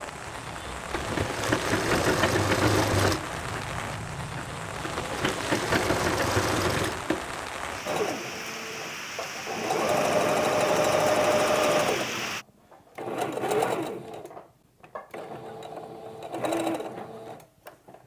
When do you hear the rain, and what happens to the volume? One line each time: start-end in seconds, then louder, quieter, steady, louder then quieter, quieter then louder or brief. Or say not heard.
0.0-12.4 steady.